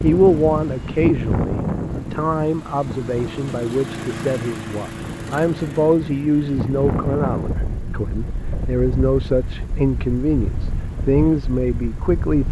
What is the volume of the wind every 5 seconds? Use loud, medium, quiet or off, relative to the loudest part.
loud, loud, medium.